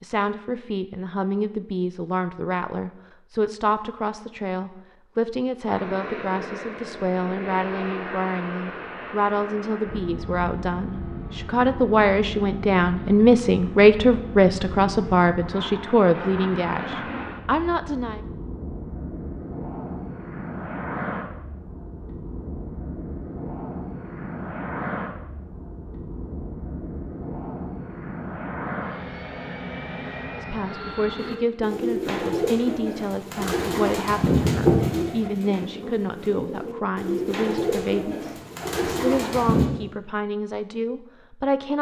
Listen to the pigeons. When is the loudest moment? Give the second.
35 s.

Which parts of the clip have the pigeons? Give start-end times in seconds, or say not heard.
31.1-39.7.